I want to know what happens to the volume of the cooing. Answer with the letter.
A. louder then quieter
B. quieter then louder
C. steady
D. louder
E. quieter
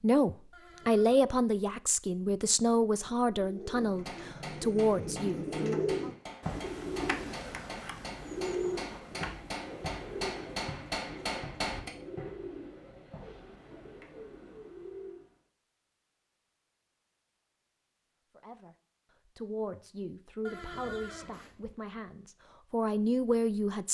E.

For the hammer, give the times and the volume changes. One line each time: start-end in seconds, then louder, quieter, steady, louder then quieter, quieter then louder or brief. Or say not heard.
4.0-11.9 louder.